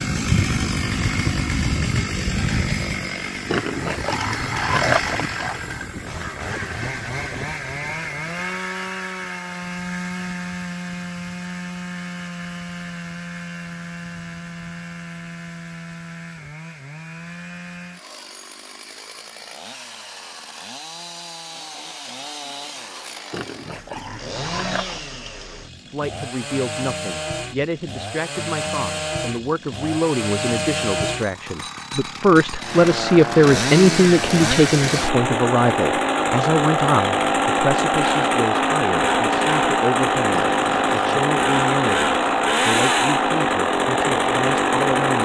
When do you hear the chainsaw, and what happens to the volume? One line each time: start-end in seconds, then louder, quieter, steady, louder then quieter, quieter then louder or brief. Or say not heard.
0.0-45.2 quieter then louder.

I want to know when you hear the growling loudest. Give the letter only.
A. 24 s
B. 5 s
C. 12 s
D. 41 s
B.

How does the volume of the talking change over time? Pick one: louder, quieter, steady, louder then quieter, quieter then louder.
louder then quieter.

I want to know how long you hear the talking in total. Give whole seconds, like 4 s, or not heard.
19 s.